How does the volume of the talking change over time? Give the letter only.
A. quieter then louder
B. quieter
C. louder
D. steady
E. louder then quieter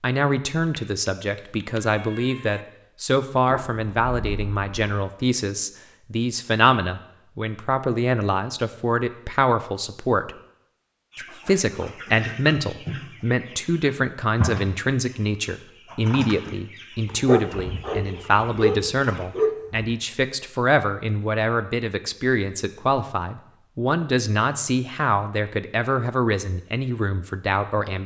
D.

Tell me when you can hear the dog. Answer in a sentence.
You can hear the dog from 3.5 to 4.7 s and from 17.1 to 19.9 s.